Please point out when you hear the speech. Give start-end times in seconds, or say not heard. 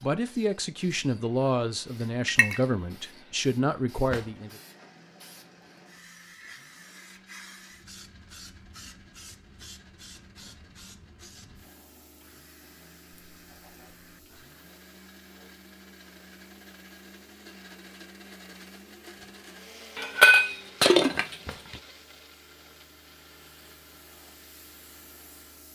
0.0-4.5.